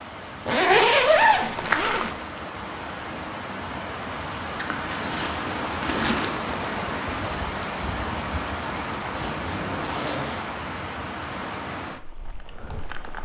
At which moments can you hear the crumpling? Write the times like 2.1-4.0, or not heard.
4.5-6.5.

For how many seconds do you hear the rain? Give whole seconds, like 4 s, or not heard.
13 s.